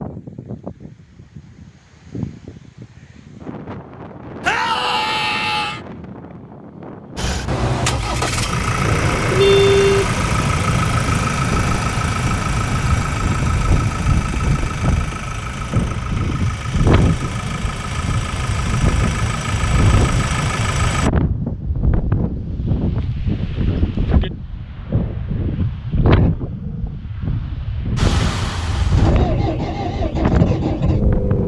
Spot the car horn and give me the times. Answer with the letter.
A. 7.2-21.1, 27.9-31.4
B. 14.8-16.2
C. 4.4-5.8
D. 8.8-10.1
D.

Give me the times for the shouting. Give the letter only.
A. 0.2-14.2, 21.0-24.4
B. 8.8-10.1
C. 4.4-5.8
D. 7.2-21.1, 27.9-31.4
C.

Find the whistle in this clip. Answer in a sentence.
The whistle can't be heard in this clip.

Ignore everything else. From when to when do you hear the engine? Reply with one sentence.
You can hear the engine from 7.2 to 21.1 s and from 27.9 to 31.4 s.